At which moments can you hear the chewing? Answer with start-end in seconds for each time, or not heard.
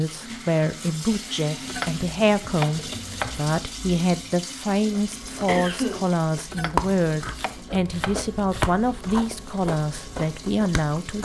4.9-11.2.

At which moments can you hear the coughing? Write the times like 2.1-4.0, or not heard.
5.0-6.0.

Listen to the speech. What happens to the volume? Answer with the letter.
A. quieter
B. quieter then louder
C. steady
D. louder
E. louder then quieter
C.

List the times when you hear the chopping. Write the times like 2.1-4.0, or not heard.
1.6-3.4, 6.5-9.2.